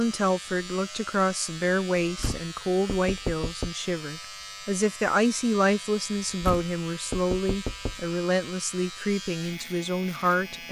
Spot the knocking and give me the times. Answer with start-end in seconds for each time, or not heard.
2.0-3.8, 6.2-8.1.